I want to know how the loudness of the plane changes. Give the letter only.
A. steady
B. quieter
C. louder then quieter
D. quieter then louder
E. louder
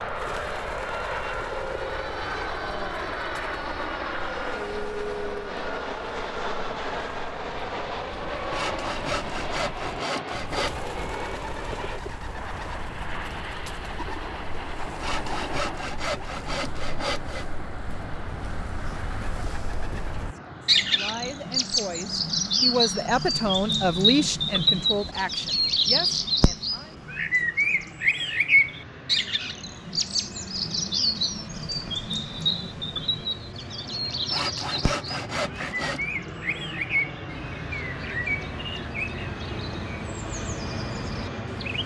D.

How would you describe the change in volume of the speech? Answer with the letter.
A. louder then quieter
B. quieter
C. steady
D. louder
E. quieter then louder
A.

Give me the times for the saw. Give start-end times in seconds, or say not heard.
8.5-10.8, 14.9-17.4, 34.3-36.0.